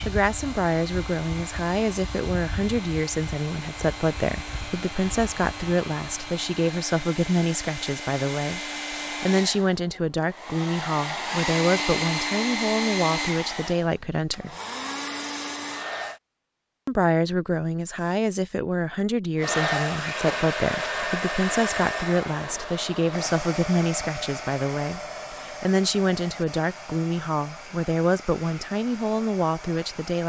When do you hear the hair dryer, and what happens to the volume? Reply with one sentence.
You can hear the hair dryer from 0.0 to 16.2 s, getting louder; and from 19.4 to 30.2 s, getting quieter.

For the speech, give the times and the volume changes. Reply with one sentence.
The speech can be heard from 0.1 to 14.6 s, at a steady volume; and from 16.9 to 30.2 s, at a steady volume.